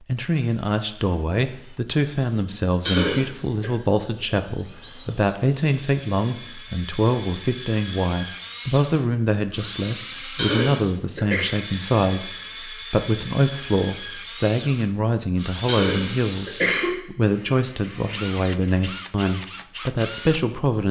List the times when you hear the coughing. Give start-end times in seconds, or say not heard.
2.9-3.7, 10.3-11.5, 15.7-16.9.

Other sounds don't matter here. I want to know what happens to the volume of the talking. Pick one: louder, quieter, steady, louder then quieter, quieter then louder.
steady.